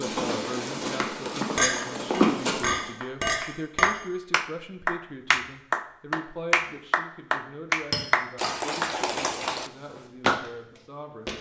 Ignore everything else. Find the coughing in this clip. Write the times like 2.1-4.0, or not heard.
not heard.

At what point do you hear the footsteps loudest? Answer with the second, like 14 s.
2 s.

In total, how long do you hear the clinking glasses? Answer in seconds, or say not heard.
3 s.